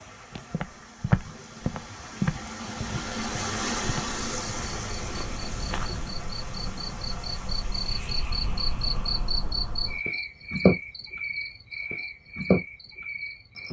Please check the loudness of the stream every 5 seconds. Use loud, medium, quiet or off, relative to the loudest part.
loud, medium, off.